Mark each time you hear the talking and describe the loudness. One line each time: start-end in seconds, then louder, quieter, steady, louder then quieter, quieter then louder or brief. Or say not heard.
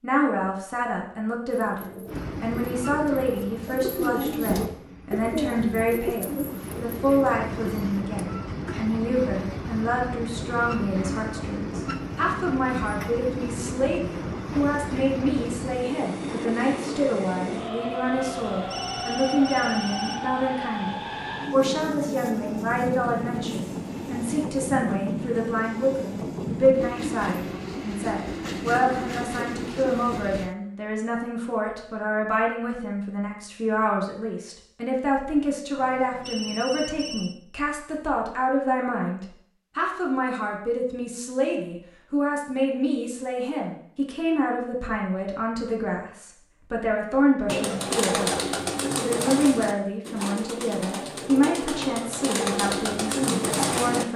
0.0-54.1 steady.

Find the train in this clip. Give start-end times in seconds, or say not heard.
2.0-30.6.